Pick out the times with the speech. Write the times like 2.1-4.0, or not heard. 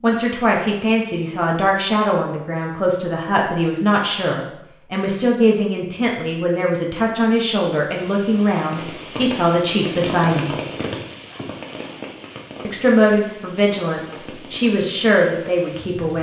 0.0-10.6, 12.7-16.1.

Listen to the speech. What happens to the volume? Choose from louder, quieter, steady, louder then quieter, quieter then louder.
steady.